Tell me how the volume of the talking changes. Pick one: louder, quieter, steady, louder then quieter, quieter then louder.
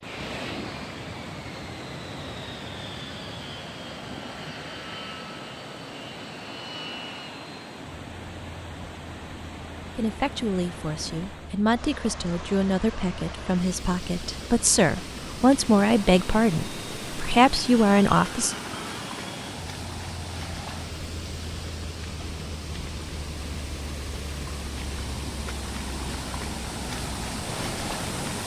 louder.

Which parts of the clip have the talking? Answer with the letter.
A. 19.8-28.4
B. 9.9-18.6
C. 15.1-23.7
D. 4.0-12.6
B.